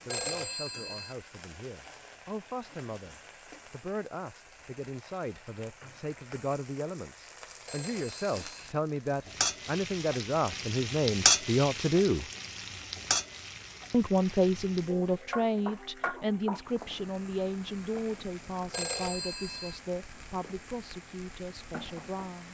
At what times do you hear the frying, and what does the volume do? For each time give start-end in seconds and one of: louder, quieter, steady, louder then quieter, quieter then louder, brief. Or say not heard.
0.0-22.4 louder then quieter.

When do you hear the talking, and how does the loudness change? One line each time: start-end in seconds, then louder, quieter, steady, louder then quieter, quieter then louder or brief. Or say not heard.
0.1-12.2 louder
13.9-22.4 quieter.